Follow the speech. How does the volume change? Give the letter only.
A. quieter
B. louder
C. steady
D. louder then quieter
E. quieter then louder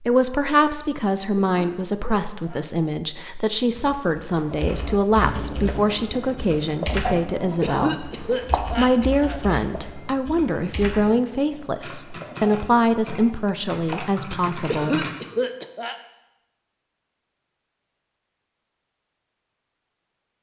C.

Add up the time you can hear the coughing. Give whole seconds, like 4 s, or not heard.
4 s.